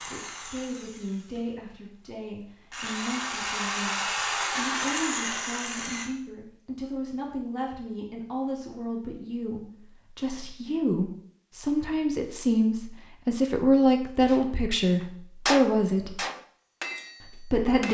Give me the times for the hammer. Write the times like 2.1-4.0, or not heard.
14.2-17.8.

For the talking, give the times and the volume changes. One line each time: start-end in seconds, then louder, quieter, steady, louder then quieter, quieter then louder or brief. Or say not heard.
0.1-16.2 louder
17.2-17.8 brief.